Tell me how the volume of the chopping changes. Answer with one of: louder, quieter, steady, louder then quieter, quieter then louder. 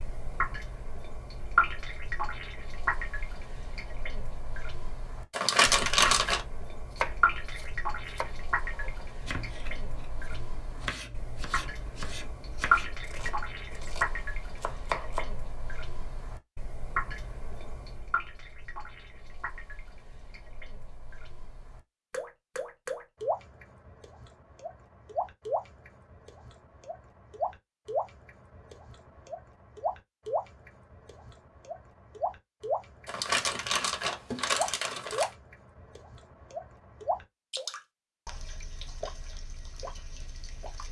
steady.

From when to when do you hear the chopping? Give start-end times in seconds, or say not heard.
7.0-15.3.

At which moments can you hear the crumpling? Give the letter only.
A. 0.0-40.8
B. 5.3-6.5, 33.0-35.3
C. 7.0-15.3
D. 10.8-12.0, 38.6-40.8
B.